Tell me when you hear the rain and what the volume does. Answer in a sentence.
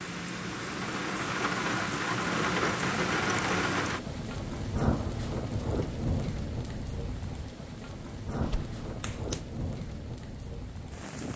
You can hear the rain from 0.0 to 11.3 s, getting quieter.